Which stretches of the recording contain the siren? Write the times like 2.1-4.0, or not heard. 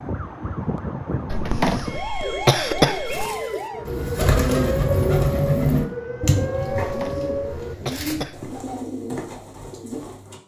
0.0-7.8.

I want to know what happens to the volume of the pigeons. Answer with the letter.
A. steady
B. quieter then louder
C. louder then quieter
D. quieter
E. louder
C.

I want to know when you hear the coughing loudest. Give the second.
3 s.